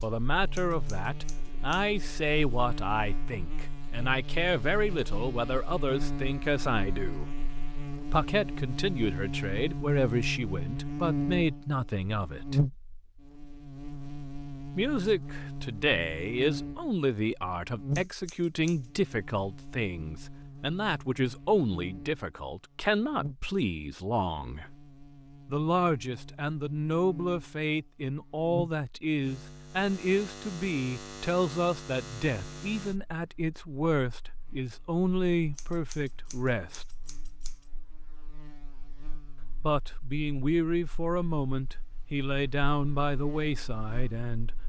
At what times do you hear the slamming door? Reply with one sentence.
You can't hear the slamming door here.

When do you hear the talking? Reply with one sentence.
The talking can be heard from 0.0 to 7.3 s, from 8.1 to 12.6 s, from 14.8 to 24.7 s, from 25.4 to 36.9 s and from 39.6 to 44.5 s.